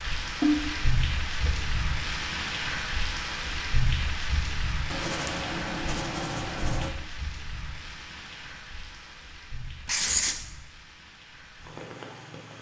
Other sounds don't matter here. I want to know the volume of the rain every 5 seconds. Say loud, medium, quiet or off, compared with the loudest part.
loud, medium, quiet.